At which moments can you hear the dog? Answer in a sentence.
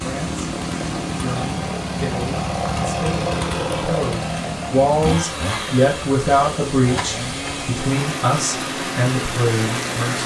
You can't hear the dog here.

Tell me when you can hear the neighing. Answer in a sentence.
The neighing can't be heard in this clip.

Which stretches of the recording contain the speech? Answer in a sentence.
You can hear the speech from 0.0 to 0.5 s and from 1.1 to 10.2 s.